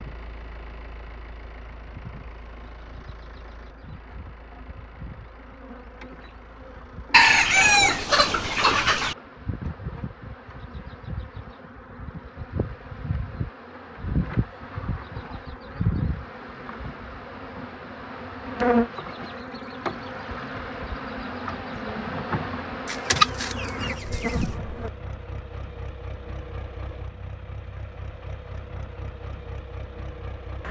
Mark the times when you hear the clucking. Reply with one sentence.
You can hear the clucking from 7.1 to 9.2 s and from 22.9 to 24.4 s.